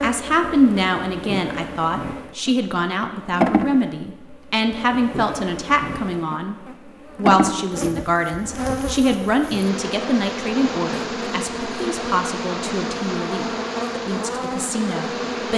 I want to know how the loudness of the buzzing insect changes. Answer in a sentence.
The volume of the buzzing insect goes up.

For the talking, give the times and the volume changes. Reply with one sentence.
You can hear the talking from 0.0 to 15.5 s, getting quieter.